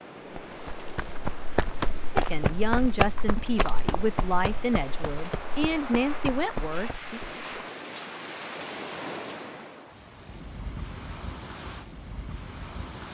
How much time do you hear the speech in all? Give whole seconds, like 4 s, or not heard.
5 s.